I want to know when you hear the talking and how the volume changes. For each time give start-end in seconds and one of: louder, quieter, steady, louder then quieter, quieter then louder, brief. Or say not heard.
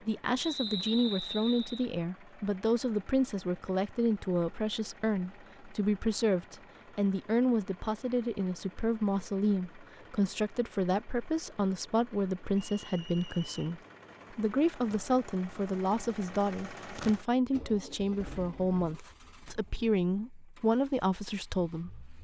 0.1-22.2 steady.